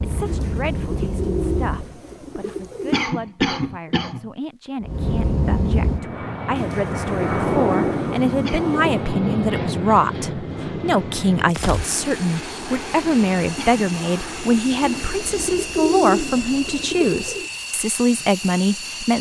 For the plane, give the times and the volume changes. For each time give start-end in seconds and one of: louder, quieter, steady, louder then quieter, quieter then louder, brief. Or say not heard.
0.0-1.9 brief
4.8-19.1 quieter.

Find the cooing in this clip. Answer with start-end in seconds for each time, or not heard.
0.2-3.0, 6.5-8.9, 14.8-17.5.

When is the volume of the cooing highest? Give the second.
16 s.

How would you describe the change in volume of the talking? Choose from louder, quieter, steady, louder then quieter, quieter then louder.
louder.